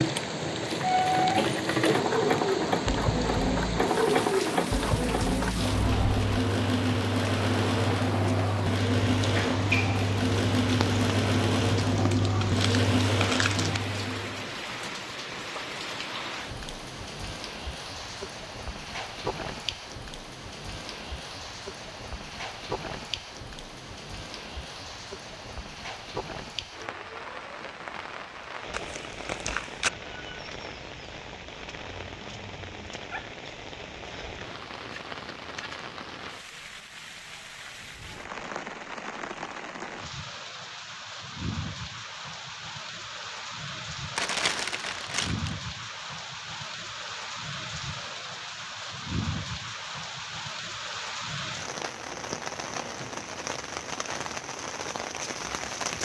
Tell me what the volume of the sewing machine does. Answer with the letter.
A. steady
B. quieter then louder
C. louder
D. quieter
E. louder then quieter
A.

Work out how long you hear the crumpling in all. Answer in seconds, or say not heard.
5 s.